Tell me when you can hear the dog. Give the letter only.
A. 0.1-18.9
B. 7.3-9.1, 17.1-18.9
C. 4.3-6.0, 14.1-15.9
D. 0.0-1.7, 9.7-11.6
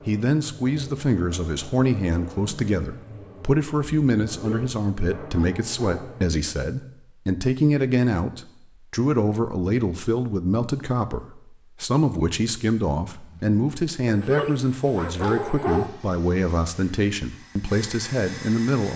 C.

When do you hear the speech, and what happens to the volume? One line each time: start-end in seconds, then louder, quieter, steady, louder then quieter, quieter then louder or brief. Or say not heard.
0.1-18.9 steady.